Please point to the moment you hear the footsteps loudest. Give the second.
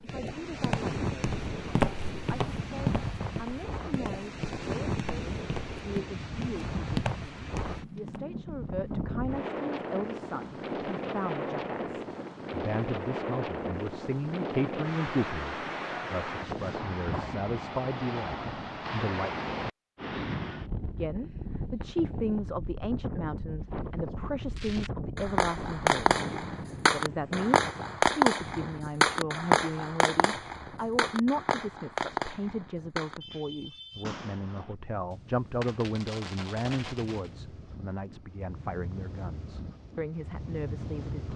2 s.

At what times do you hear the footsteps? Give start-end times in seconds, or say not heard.
0.0-8.2.